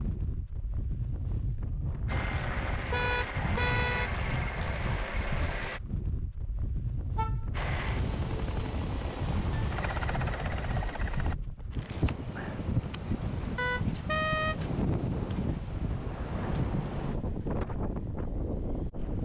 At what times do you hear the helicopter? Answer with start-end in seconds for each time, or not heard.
2.0-5.8, 7.5-11.3.